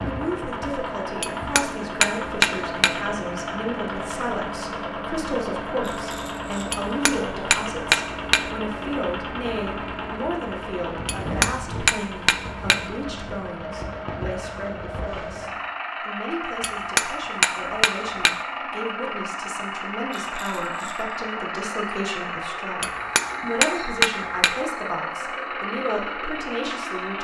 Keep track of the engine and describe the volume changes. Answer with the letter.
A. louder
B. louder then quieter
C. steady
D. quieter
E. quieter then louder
C.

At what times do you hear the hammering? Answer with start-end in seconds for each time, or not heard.
1.2-3.0, 6.7-8.4, 11.1-12.8, 16.6-18.4, 22.8-24.6.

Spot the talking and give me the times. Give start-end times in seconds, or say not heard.
0.0-27.1.